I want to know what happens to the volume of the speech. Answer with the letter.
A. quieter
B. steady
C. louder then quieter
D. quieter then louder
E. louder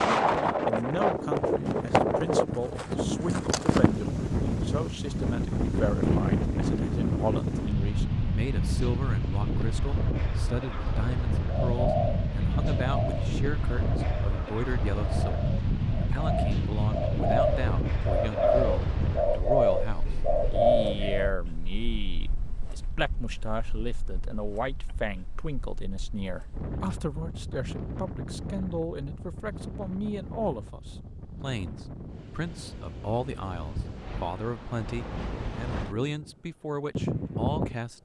B.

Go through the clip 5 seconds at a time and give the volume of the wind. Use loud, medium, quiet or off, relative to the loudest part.
loud, loud, medium, medium, quiet, quiet, quiet, medium.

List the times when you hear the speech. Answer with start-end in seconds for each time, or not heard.
0.1-38.0.